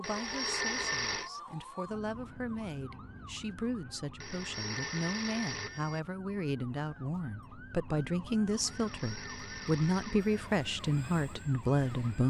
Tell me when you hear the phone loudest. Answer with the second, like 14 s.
1 s.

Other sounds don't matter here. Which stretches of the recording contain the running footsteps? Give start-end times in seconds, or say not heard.
not heard.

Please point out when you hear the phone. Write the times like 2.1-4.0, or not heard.
0.0-1.3, 4.2-6.0, 8.7-10.5.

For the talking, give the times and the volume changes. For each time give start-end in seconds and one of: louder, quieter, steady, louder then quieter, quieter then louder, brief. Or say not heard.
0.0-12.2 louder.